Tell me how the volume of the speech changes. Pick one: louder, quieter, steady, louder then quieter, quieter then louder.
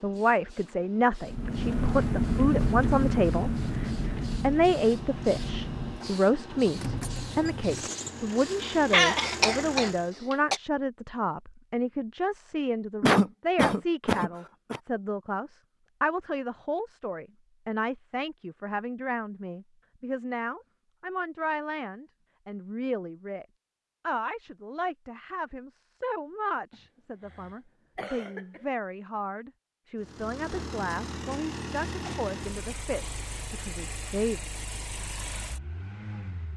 quieter.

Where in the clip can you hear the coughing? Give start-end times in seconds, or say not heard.
8.6-10.6, 13.0-14.8, 26.7-28.6.